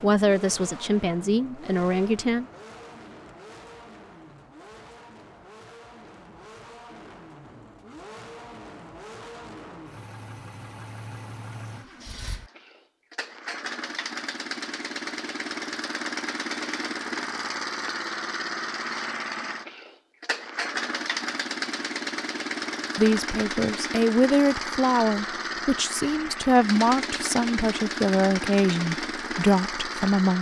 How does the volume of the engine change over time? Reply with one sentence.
The volume of the engine goes up.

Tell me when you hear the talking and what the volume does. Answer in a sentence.
You can hear the talking briefly from 0.0 to 2.5 s; and from 22.9 to 30.3 s, at a steady volume.